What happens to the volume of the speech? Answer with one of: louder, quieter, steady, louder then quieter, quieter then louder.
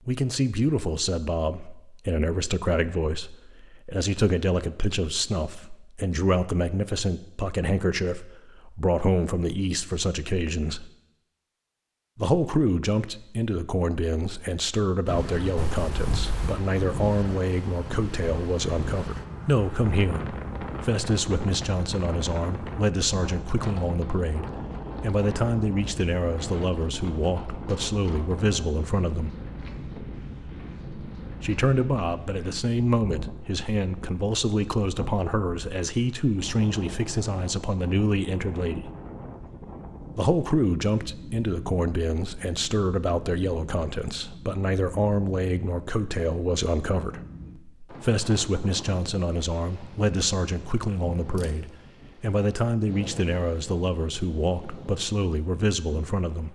steady.